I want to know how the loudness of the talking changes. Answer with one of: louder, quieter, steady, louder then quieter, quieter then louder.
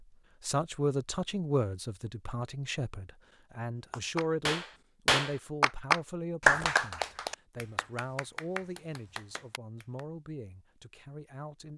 quieter.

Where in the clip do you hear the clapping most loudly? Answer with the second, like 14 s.
7 s.